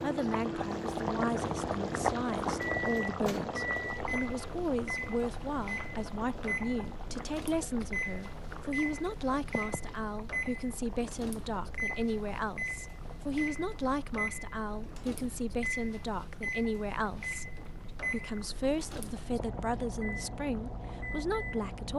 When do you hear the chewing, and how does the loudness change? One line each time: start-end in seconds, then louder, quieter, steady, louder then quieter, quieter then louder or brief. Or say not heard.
not heard.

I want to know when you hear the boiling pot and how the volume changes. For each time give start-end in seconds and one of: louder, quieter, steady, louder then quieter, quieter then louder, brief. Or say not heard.
0.0-21.6 quieter.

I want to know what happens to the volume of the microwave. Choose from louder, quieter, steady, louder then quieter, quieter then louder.
steady.